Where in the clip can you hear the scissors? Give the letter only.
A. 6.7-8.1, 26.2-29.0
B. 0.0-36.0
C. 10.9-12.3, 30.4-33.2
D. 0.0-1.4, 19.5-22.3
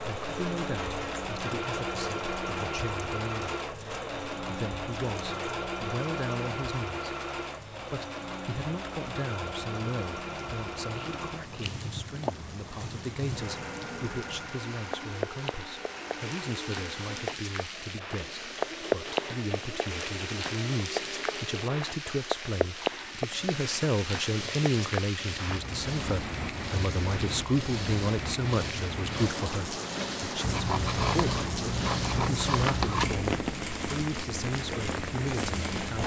C.